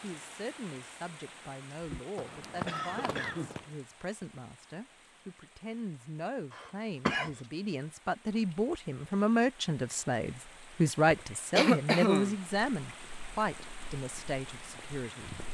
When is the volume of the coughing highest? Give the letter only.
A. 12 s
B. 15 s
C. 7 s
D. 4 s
A.